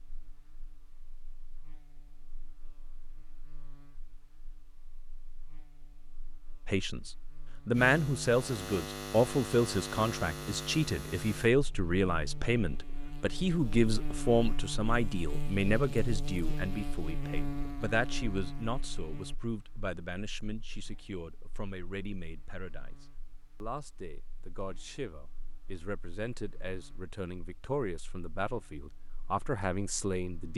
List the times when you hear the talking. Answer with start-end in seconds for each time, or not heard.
6.7-30.5.